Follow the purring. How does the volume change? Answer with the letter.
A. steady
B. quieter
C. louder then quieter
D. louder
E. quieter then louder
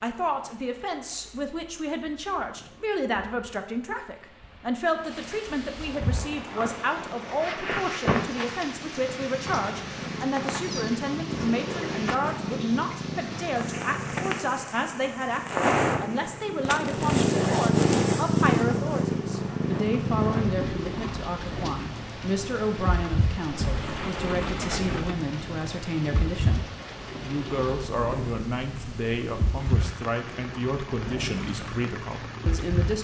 C.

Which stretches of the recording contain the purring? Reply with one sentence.
You can hear the purring from 6.0 to 32.9 s.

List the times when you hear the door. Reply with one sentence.
You can hear the door from 23.5 to 25.1 s.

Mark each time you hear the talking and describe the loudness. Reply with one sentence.
The talking can be heard from 0.0 to 32.9 s, at a steady volume.